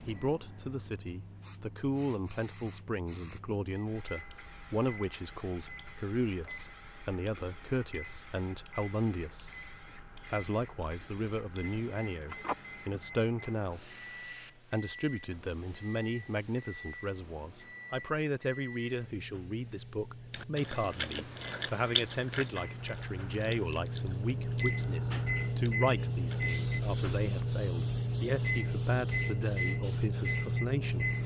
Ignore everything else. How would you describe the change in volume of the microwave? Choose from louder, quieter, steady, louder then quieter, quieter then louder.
louder.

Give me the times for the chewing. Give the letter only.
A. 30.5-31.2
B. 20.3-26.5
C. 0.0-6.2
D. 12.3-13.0
B.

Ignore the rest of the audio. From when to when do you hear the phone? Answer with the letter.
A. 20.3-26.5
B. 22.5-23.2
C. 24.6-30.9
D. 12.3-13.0
D.